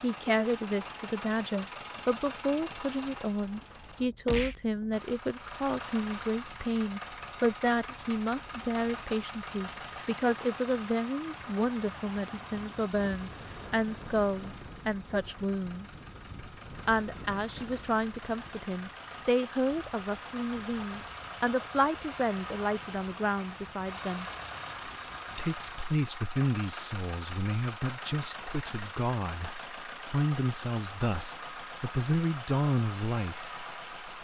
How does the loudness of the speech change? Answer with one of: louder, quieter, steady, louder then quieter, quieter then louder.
steady.